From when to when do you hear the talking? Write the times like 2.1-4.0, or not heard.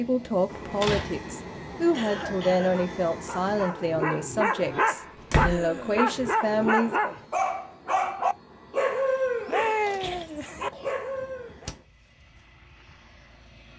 0.0-7.1.